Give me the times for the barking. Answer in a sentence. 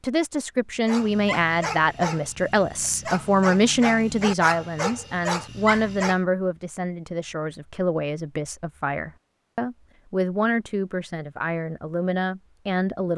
The barking can be heard from 0.8 to 6.2 s.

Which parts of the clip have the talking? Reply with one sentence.
The talking can be heard from 0.0 to 13.1 s.